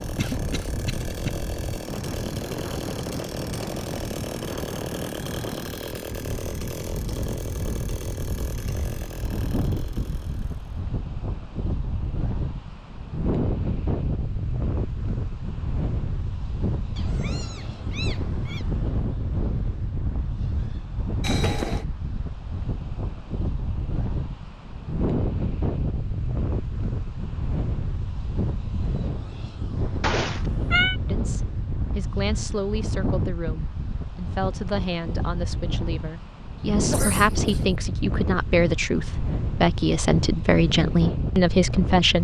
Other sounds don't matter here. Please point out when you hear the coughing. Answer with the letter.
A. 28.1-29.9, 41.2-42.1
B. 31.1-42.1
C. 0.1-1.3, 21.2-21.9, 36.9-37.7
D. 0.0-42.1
C.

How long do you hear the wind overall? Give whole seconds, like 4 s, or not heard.
42 s.